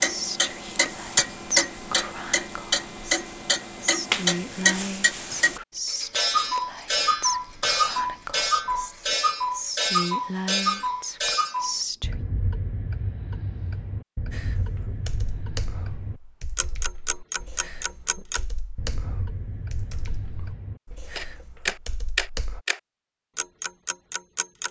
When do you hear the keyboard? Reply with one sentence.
The keyboard can be heard from 14.3 to 22.6 s.